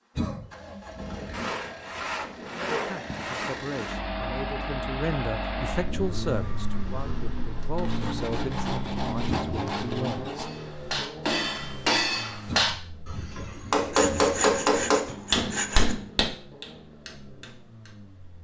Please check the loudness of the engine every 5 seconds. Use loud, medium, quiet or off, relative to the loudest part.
loud, loud, medium, quiet.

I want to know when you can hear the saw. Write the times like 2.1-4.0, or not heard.
1.3-4.0, 7.8-10.5, 13.9-15.9.